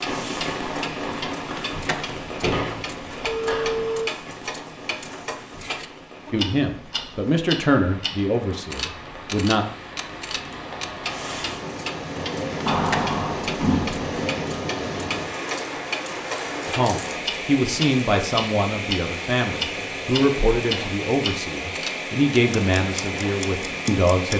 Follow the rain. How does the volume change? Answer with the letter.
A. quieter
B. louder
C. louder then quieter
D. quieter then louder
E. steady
D.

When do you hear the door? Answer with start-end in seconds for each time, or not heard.
2.0-3.9, 12.7-14.1.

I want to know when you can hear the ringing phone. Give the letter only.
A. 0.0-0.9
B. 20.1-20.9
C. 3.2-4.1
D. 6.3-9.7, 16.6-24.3
C.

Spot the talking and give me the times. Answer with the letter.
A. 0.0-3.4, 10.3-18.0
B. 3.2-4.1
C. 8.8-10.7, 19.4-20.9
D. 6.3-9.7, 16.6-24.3
D.